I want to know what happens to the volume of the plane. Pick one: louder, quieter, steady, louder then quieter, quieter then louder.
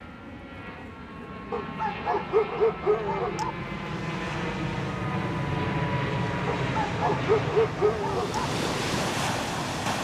louder then quieter.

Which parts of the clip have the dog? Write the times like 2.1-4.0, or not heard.
1.5-3.5, 6.5-8.5.